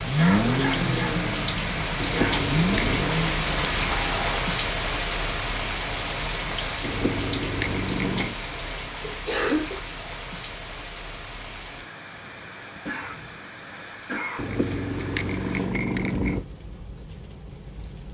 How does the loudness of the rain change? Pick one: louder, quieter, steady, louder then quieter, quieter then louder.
quieter.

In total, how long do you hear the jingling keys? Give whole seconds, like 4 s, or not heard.
5 s.